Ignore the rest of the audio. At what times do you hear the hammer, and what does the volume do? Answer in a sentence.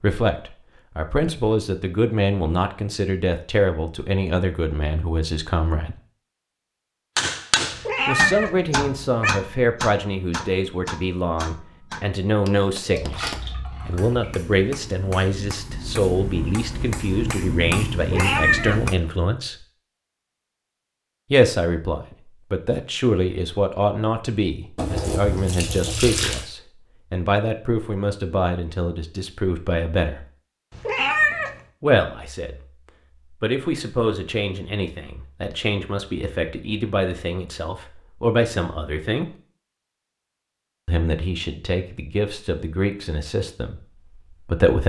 You can hear the hammer from 7.2 to 18.9 s, getting quieter then louder.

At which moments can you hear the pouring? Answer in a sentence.
The pouring can be heard from 12.9 to 14.3 s and from 24.8 to 26.4 s.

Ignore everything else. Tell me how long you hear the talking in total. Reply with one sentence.
The talking can be heard for 37 seconds in total.